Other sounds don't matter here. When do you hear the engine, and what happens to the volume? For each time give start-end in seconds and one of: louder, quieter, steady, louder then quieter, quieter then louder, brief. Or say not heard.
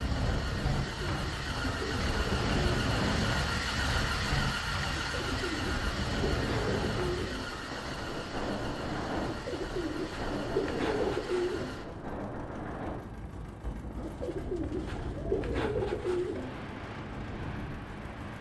0.0-18.3 quieter.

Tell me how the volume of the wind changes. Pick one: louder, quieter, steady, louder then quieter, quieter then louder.
quieter.